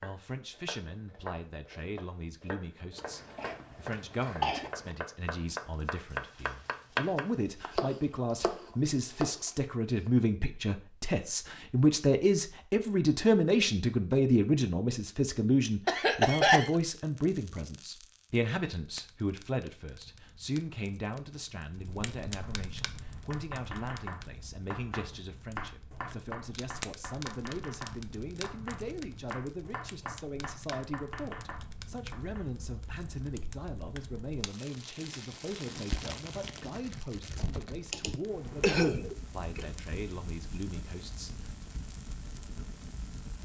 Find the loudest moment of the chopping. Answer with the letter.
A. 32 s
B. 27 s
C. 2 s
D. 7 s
D.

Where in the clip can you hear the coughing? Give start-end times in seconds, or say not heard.
3.0-5.0, 15.8-16.8, 37.9-39.6.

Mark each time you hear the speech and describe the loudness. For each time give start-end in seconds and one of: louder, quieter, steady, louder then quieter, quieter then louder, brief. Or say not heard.
0.0-41.3 louder then quieter.